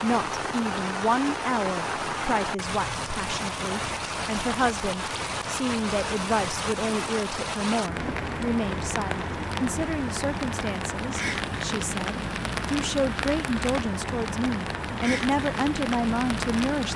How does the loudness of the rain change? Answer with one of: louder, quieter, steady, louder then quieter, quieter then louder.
steady.